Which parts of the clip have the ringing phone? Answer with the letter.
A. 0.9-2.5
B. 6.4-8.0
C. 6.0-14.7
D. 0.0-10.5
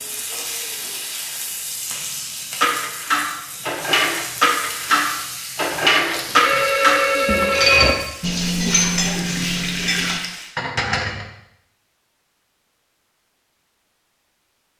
B.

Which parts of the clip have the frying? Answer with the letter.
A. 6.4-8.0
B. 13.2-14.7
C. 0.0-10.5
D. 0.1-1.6
C.